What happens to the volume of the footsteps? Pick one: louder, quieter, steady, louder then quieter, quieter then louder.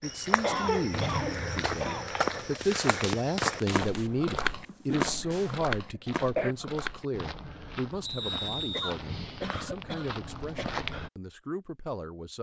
quieter.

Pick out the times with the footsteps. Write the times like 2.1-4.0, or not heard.
0.0-11.1.